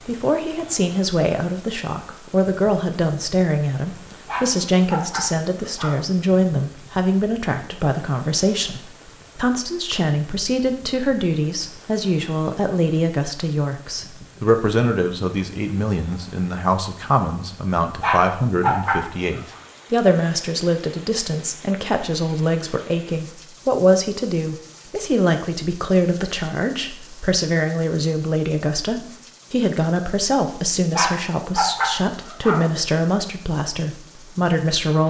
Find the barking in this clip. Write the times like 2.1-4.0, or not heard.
4.2-6.0, 18.0-19.6, 30.9-32.6.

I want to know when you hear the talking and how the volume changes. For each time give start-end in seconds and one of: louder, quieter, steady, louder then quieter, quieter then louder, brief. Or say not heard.
0.1-35.0 steady.